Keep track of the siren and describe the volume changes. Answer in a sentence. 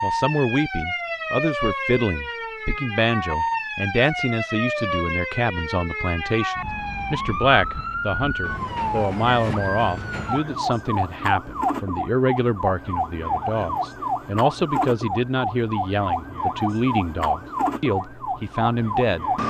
The loudness of the siren stays about the same.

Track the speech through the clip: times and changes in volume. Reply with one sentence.
You can hear the speech from 0.0 to 19.2 s, at a steady volume.